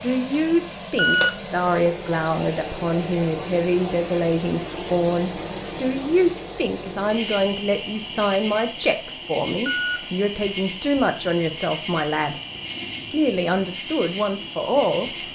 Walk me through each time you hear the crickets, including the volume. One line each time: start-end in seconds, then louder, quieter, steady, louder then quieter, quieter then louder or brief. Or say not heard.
0.0-15.3 quieter.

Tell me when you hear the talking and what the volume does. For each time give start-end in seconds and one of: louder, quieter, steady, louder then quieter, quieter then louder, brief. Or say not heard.
0.0-12.3 steady
13.1-15.1 brief.